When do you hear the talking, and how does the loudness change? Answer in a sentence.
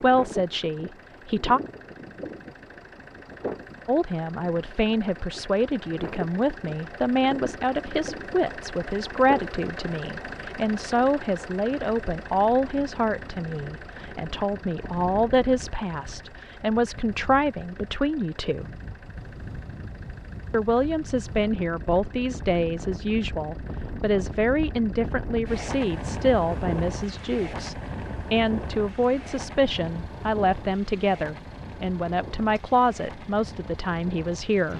You can hear the talking briefly from 0.0 to 1.6 s; from 3.9 to 18.7 s, at a steady volume; and from 20.5 to 34.7 s, at a steady volume.